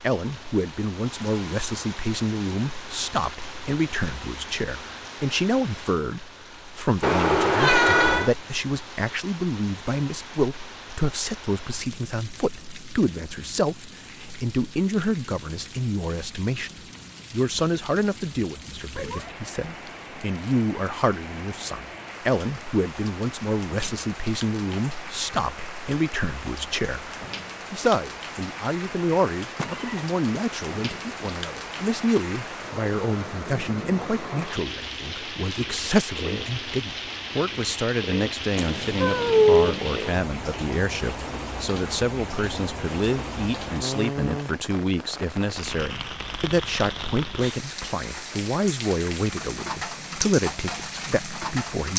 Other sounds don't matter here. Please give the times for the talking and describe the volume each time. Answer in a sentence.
The talking can be heard from 0.0 to 51.9 s, at a steady volume.